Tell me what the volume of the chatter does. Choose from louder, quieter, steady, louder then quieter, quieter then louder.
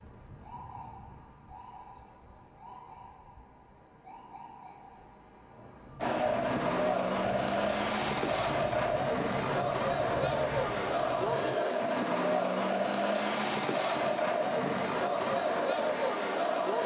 steady.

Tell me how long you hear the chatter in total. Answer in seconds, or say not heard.
11 s.